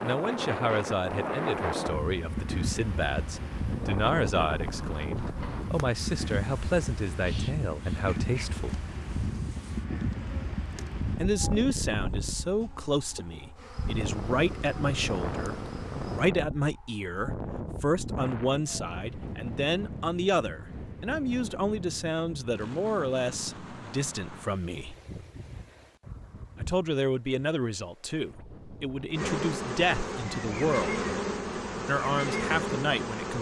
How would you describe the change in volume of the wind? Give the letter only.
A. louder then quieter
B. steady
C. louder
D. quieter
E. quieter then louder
D.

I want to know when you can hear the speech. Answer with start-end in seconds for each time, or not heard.
0.0-8.8, 11.2-24.9, 26.6-31.1, 31.9-33.3.